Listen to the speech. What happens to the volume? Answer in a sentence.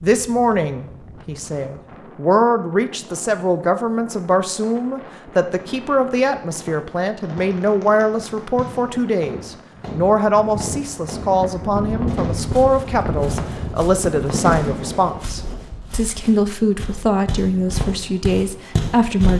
The loudness of the speech stays about the same.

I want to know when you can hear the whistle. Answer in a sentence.
The whistle can't be heard in this clip.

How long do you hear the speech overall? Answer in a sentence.
The speech can be heard for 19 seconds in total.